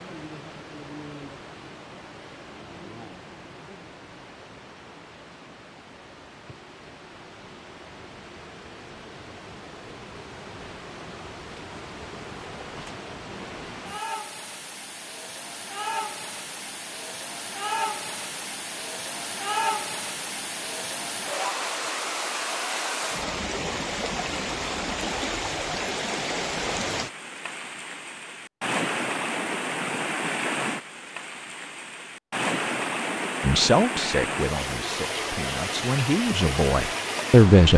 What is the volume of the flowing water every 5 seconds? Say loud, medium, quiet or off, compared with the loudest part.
quiet, quiet, medium, loud, loud, loud, loud, loud.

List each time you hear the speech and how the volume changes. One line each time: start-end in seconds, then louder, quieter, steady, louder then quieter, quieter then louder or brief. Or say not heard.
33.4-37.7 quieter then louder.